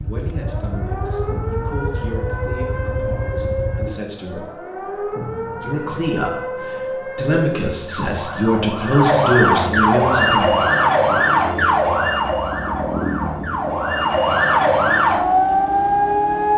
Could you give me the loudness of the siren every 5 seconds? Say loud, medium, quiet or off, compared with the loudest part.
quiet, medium, loud, loud.